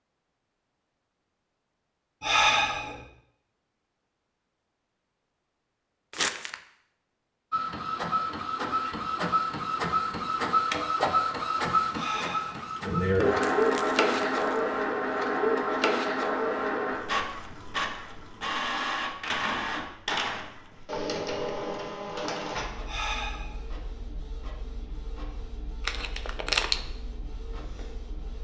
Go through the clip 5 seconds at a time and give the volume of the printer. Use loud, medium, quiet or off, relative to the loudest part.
off, loud, loud, loud, medium, quiet.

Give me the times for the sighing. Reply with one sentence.
The sighing can be heard from 2.2 to 3.0 s, from 11.9 to 12.8 s and from 22.9 to 23.6 s.